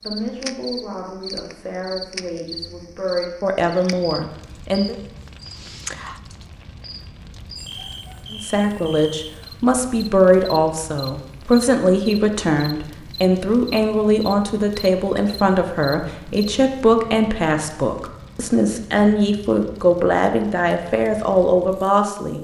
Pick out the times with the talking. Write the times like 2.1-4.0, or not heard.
0.0-5.0, 8.3-22.3.